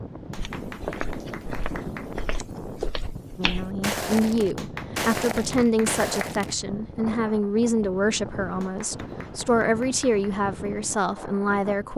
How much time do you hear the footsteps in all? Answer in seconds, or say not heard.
6 s.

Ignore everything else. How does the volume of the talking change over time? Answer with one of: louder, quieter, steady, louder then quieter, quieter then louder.
steady.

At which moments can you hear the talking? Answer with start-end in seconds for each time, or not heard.
3.4-11.9.